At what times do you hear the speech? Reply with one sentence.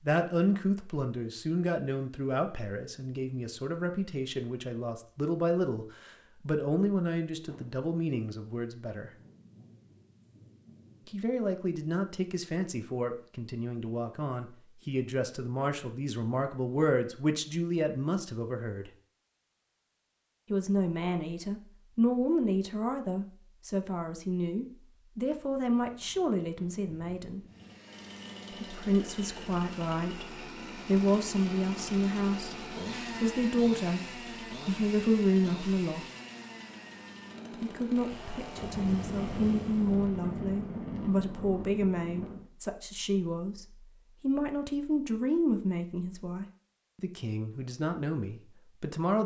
You can hear the speech from 0.0 to 9.1 s, from 11.1 to 18.9 s, from 20.5 to 27.4 s, from 28.6 to 34.0 s, from 34.6 to 36.0 s and from 37.6 to 49.2 s.